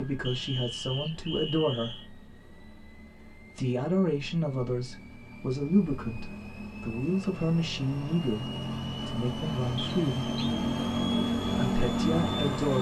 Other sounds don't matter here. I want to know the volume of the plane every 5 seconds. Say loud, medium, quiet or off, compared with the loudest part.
quiet, medium, loud.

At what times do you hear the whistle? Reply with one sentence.
The whistle can be heard from 0.2 to 2.0 s and from 9.8 to 10.5 s.